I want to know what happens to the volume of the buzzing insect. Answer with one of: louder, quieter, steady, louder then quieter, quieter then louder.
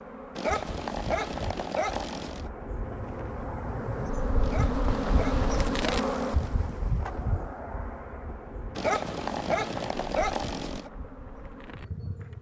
louder then quieter.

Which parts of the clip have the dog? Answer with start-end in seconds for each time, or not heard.
0.3-2.5, 4.4-6.5, 8.8-10.9.